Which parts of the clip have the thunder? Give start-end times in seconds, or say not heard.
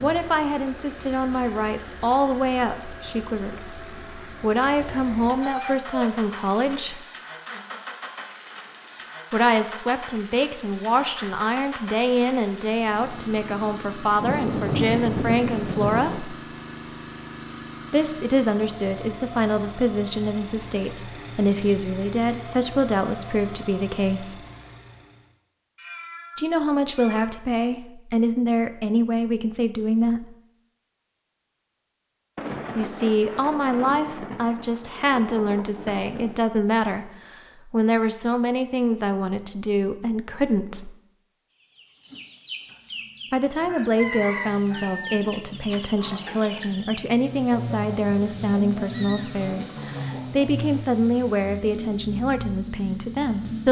14.2-16.2, 32.4-36.4.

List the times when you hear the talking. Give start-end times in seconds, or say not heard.
0.0-7.0, 9.3-16.4, 17.9-24.4, 26.4-30.4, 32.8-40.9, 43.3-53.6.